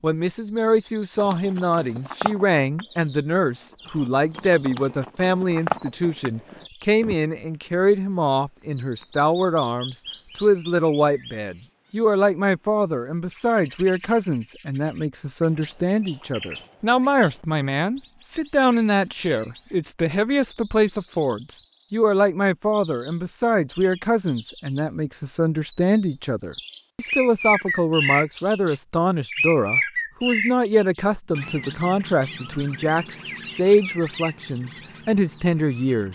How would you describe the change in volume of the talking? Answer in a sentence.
The loudness of the talking stays about the same.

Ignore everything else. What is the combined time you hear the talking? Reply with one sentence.
You can hear the talking for 36 seconds altogether.